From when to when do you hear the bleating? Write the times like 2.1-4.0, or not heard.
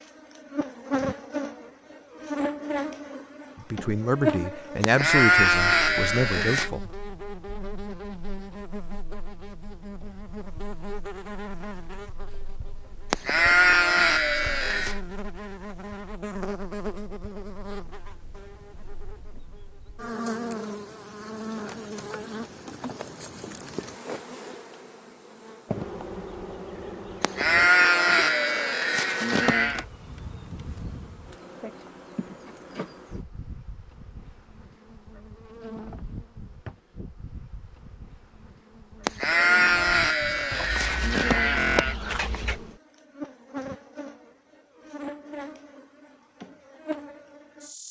4.8-6.7, 13.1-15.0, 27.2-29.9, 39.0-42.0.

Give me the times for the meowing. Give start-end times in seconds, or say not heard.
not heard.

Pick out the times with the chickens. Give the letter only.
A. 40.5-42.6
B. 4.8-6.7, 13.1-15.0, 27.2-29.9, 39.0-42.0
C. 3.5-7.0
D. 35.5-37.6
A.